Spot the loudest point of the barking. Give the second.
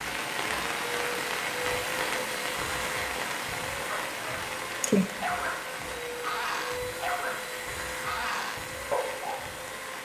5 s.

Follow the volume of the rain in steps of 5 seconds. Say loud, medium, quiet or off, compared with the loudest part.
loud, medium.